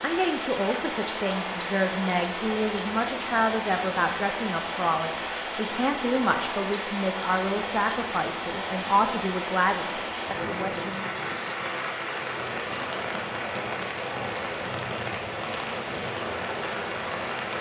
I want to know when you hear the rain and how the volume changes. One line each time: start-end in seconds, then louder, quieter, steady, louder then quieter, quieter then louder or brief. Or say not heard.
0.0-17.5 steady.